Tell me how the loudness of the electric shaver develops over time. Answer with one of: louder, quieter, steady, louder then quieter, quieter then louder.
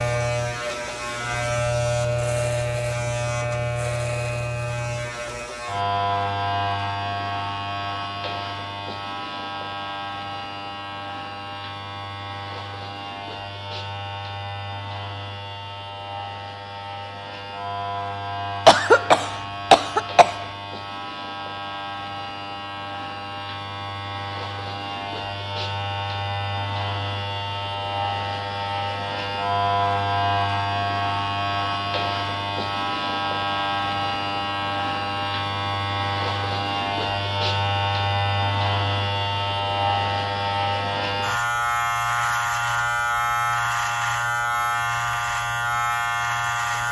quieter then louder.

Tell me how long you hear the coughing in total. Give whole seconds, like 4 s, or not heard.
2 s.